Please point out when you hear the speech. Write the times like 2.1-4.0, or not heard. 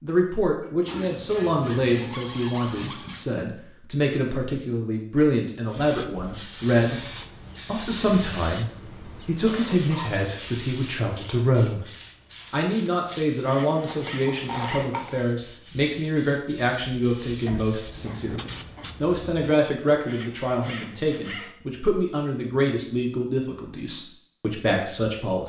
0.0-7.0, 7.7-11.9, 12.5-25.4.